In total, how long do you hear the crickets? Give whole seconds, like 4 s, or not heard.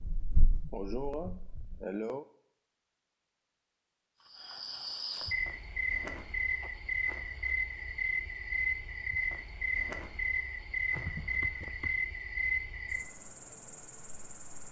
10 s.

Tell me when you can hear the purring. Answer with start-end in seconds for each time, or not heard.
0.0-1.8.